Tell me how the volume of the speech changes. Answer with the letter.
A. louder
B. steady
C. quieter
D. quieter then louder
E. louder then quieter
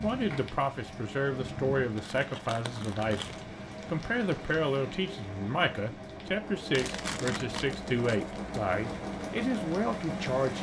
B.